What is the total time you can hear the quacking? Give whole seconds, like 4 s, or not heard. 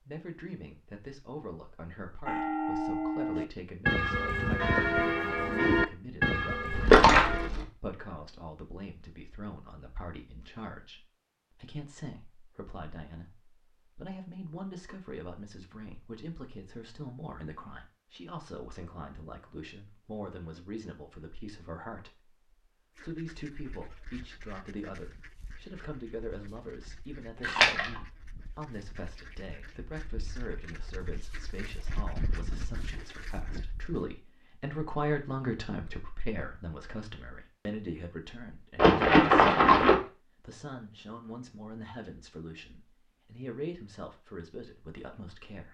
11 s.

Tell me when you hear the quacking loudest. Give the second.
32 s.